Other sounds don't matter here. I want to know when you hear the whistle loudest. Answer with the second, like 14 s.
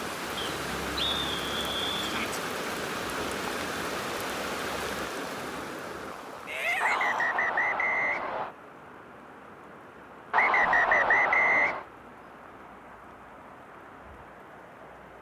11 s.